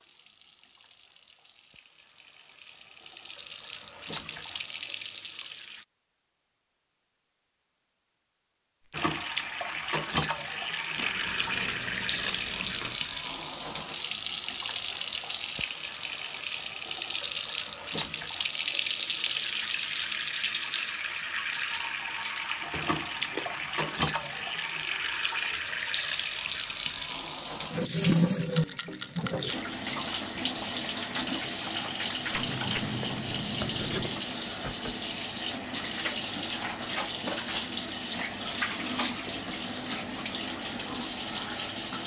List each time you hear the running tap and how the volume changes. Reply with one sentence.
You can hear the running tap from 0.0 to 5.8 s, getting louder; and from 8.9 to 42.0 s, at a steady volume.